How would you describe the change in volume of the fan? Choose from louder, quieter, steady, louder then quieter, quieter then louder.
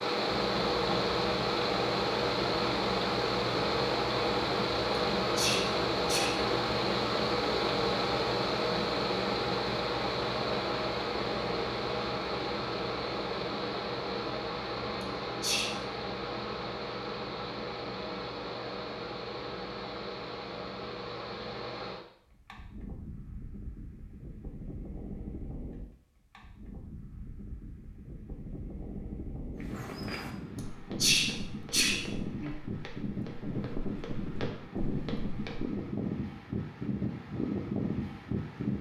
quieter then louder.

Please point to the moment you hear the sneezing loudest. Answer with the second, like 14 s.
31 s.